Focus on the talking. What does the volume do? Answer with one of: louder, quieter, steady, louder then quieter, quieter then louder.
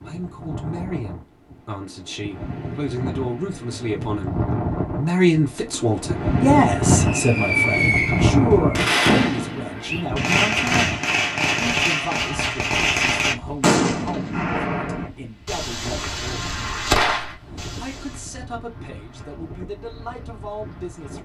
louder then quieter.